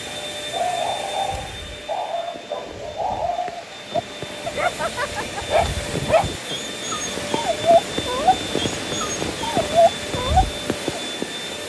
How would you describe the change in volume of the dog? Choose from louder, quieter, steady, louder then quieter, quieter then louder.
louder.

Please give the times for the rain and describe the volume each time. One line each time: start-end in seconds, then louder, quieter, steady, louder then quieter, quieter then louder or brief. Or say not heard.
0.0-11.6 louder.